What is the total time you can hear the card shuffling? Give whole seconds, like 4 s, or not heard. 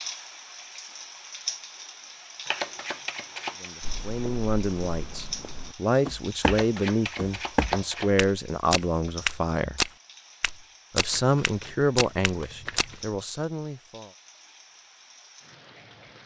5 s.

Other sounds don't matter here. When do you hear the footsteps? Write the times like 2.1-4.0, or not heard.
3.8-12.9.